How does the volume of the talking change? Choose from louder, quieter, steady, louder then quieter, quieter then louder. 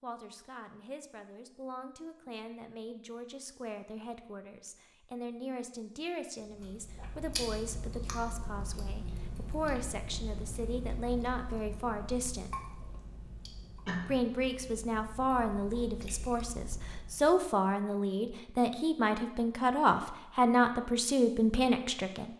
louder.